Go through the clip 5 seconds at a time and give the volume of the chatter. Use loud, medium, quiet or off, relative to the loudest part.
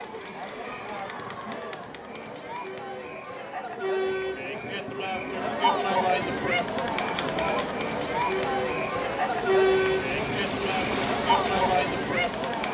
medium, loud, loud.